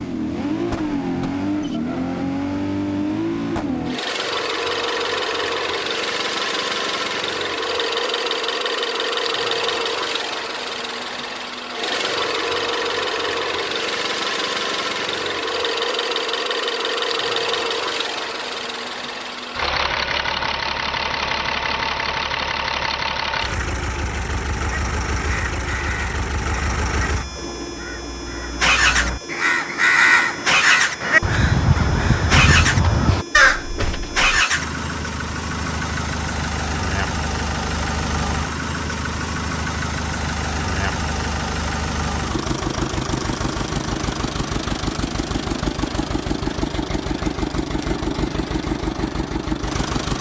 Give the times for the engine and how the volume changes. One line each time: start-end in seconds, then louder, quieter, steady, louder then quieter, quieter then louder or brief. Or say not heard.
0.0-50.1 steady.